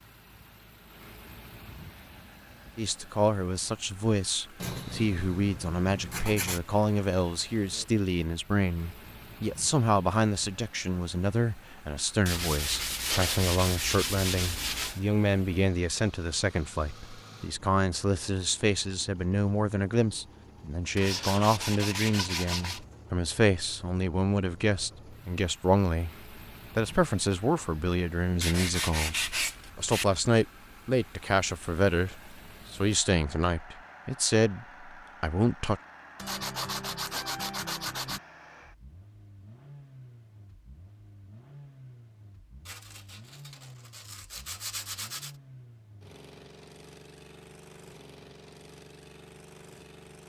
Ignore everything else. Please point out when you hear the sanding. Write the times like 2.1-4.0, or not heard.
4.6-6.6, 12.2-15.0, 20.9-22.8, 28.4-30.1, 36.1-38.2, 42.6-45.4.